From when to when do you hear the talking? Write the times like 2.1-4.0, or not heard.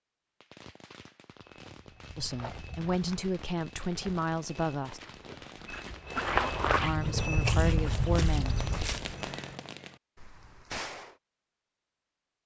2.1-5.0, 6.8-8.6.